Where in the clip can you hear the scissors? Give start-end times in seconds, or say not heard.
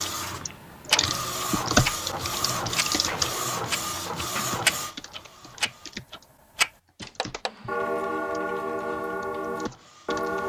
not heard.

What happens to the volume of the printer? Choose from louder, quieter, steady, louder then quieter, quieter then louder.
quieter.